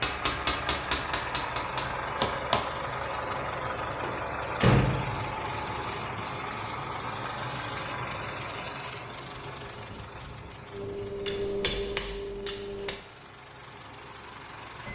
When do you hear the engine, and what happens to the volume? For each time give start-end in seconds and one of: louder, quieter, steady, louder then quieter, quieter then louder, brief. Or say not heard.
0.0-14.9 quieter.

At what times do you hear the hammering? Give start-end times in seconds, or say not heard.
0.0-2.6, 10.7-13.0.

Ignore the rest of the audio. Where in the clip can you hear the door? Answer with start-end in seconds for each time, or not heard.
3.4-5.3.